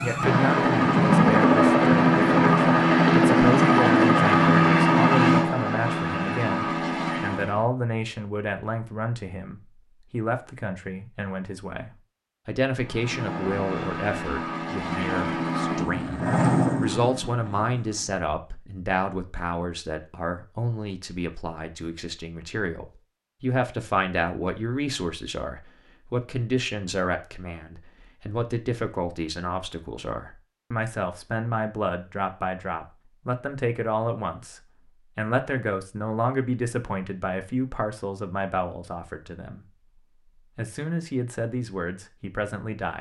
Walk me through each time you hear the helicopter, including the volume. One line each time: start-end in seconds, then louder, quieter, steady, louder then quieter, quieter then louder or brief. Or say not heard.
0.0-7.7 quieter
12.8-18.1 louder then quieter.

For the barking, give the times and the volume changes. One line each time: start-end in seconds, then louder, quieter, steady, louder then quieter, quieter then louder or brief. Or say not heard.
not heard.